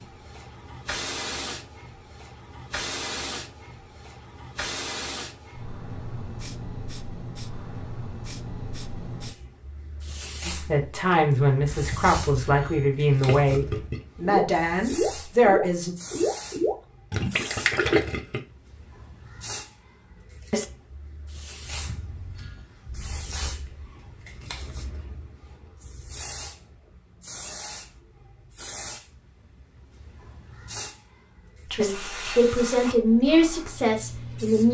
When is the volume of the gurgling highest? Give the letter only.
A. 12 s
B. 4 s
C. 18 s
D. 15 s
C.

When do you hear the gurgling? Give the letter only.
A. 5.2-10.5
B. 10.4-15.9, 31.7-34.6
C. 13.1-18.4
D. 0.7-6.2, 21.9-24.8
C.